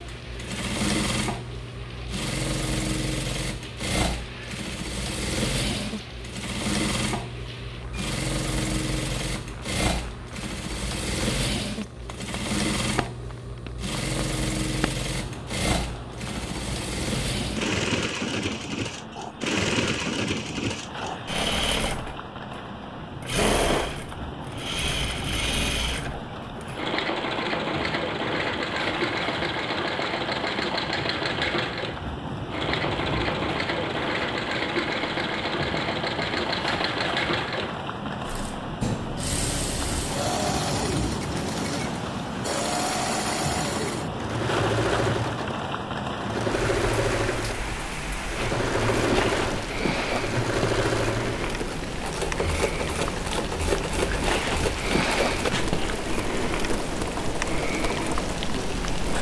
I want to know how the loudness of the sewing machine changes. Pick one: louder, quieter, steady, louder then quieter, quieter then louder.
steady.